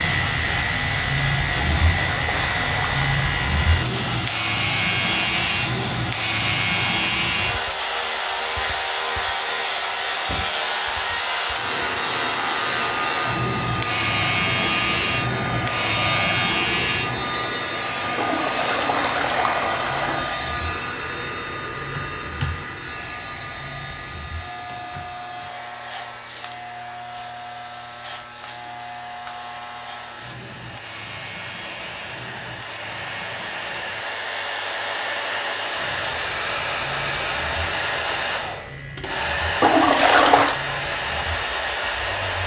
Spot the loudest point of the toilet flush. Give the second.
40 s.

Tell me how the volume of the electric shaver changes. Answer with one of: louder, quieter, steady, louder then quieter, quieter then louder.
quieter.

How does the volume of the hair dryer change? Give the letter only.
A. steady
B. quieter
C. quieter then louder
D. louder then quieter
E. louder
C.